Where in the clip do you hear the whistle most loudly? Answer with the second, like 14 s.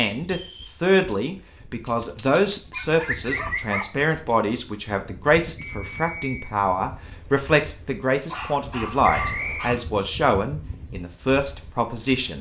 9 s.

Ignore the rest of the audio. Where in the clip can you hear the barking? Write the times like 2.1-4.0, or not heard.
1.9-3.9, 8.2-9.8.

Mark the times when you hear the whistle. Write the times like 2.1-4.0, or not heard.
0.2-0.8, 5.5-6.5, 9.0-9.7.